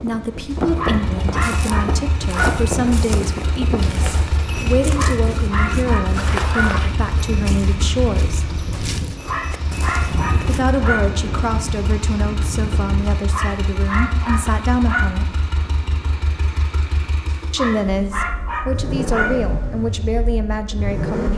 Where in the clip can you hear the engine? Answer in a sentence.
You can hear the engine from 0.0 to 21.3 s.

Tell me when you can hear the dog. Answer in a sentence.
The dog can be heard from 0.5 to 2.6 s, from 5.0 to 6.8 s, from 9.2 to 11.2 s, from 13.3 to 15.2 s and from 17.3 to 19.4 s.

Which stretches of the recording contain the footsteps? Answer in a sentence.
The footsteps can be heard from 1.3 to 10.6 s.